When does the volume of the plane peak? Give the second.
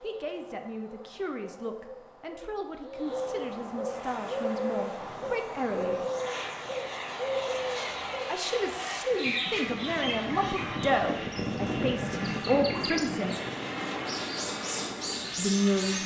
12 s.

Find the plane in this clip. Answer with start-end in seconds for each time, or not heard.
3.9-16.0.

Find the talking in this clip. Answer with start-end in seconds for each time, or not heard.
0.0-6.0, 8.2-13.3, 15.3-16.0.